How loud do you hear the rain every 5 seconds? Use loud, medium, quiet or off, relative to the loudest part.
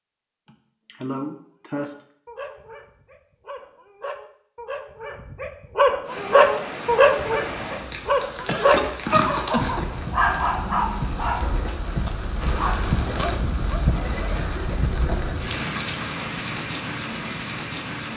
off, loud, loud, loud.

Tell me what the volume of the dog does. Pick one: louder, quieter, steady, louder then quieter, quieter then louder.
louder then quieter.